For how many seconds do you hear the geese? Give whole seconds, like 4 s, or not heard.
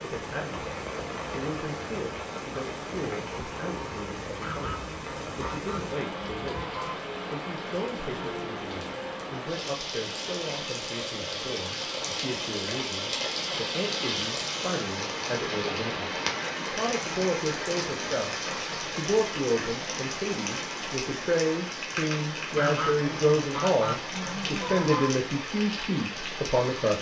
5 s.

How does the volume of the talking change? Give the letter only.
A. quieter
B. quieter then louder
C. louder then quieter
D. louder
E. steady
D.